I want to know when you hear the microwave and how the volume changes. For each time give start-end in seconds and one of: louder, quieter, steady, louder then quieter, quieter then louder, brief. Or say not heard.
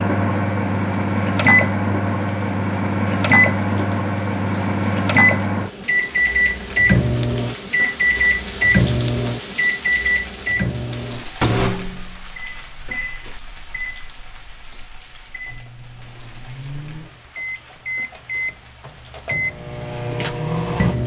0.0-21.0 quieter then louder.